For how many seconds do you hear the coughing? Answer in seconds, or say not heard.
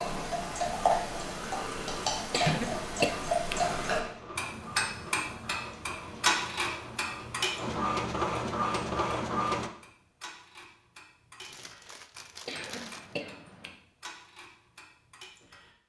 3 s.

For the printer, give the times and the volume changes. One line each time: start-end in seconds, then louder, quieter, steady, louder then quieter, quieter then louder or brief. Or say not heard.
0.0-9.7 louder.